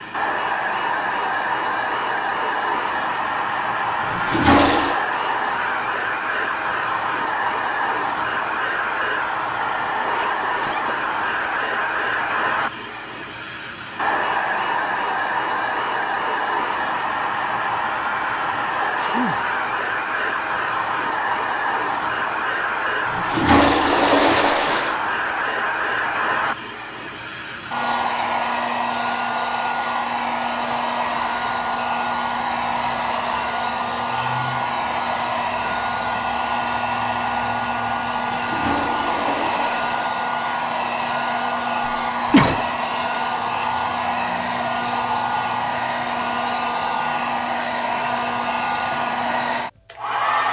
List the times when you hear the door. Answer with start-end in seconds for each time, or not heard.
not heard.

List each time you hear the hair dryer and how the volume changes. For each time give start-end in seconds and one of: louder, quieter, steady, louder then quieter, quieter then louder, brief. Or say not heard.
0.0-50.4 steady.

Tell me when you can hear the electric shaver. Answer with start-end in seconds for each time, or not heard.
not heard.